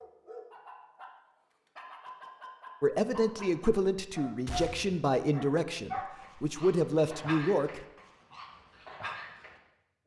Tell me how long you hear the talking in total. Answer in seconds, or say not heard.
5 s.